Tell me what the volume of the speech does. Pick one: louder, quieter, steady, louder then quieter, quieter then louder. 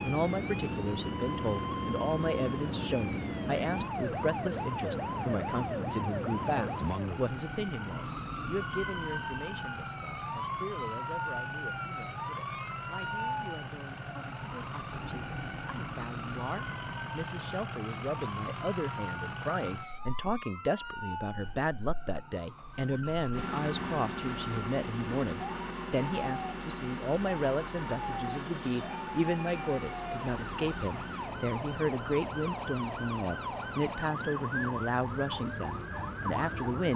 quieter then louder.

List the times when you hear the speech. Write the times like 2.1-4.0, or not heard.
0.0-36.9.